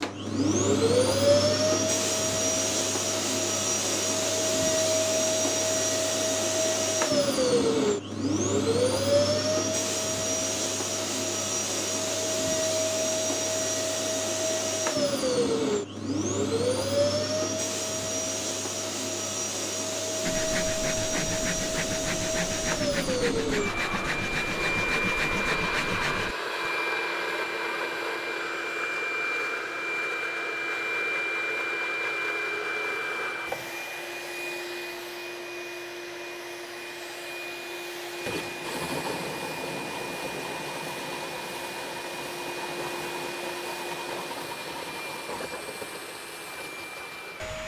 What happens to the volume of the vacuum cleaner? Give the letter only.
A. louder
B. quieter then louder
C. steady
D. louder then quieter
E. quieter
E.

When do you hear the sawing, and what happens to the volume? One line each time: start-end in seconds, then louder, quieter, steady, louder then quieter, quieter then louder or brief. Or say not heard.
20.2-26.7 steady.